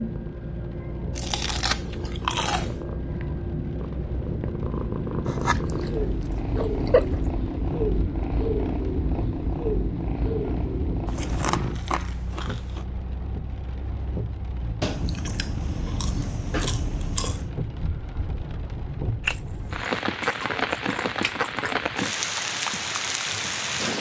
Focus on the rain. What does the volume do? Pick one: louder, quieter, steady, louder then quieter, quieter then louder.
louder.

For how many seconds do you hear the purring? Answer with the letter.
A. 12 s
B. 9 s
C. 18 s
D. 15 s
A.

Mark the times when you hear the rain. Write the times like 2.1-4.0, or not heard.
0.0-23.9.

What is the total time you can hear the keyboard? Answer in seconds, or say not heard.
not heard.